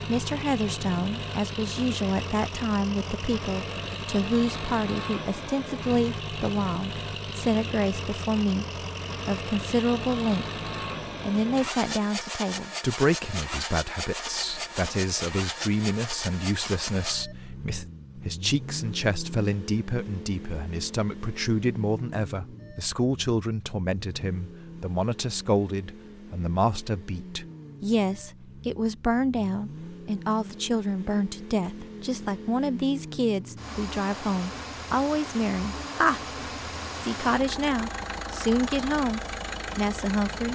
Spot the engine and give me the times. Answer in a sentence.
The engine can be heard from 0.0 to 40.5 s.